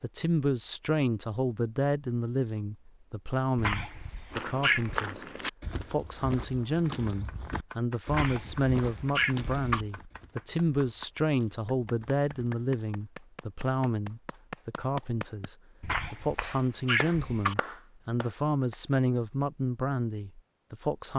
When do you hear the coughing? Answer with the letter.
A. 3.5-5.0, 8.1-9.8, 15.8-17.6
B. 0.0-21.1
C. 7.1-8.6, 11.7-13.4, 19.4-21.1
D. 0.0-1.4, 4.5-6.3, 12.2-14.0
A.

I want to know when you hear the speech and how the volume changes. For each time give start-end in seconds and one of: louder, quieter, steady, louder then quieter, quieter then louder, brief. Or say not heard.
0.0-21.1 steady.